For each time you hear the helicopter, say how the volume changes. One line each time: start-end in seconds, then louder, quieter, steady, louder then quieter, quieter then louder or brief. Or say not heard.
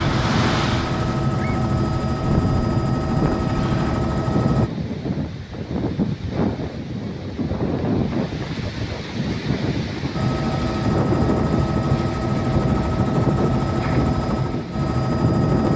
0.0-4.7 steady
10.1-15.7 steady.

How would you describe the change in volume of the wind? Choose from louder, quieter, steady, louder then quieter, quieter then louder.
steady.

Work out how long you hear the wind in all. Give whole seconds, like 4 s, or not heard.
16 s.